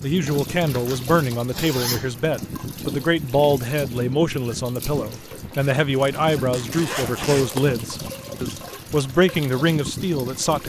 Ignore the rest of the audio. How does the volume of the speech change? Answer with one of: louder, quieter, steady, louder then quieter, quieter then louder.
steady.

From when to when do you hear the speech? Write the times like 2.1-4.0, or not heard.
0.0-10.6.